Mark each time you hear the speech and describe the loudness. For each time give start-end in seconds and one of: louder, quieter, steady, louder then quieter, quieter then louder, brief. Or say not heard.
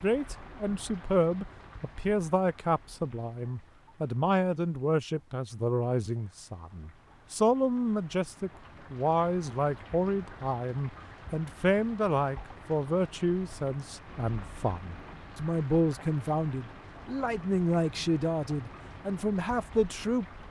0.0-20.2 steady.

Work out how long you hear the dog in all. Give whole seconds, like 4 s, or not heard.
not heard.